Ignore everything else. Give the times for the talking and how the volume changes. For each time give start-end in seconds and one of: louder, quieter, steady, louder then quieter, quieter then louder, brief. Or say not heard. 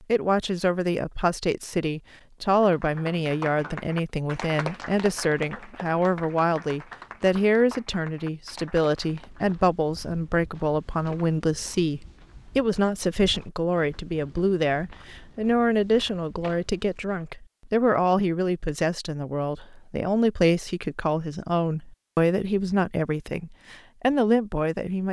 0.1-25.0 steady.